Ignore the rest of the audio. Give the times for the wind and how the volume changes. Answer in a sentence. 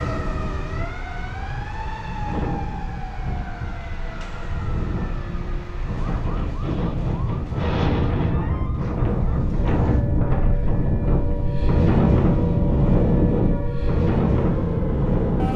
The wind can be heard from 0.0 to 15.5 s, getting louder.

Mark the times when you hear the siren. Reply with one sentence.
The siren can be heard from 0.0 to 15.5 s.